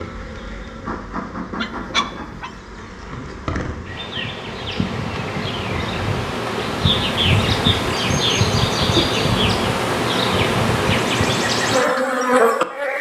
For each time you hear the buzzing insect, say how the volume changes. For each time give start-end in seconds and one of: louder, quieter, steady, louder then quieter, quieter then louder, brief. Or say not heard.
0.0-12.9 louder.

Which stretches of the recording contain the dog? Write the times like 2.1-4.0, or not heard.
1.6-2.6.